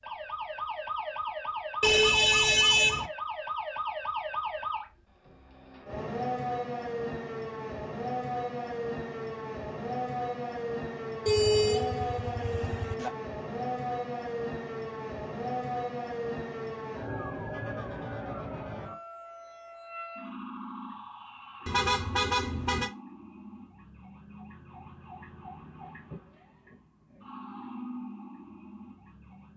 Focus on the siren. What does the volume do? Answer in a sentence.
The volume of the siren goes down.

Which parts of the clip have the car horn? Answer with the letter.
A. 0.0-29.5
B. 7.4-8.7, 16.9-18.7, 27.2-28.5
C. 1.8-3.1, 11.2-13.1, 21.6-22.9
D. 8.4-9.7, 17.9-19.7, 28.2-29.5
C.